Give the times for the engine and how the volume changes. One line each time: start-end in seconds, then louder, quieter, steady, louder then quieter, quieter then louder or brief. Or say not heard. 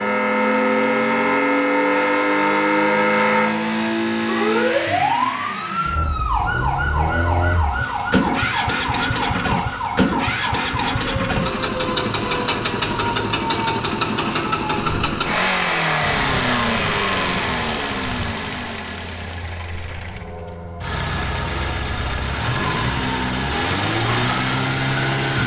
0.0-25.4 steady.